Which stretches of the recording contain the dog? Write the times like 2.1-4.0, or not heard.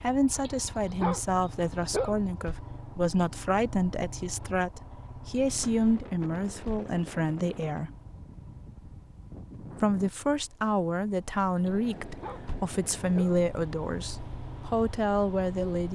0.3-2.1, 11.6-13.4.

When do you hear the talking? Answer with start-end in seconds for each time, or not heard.
0.0-7.9, 9.8-15.9.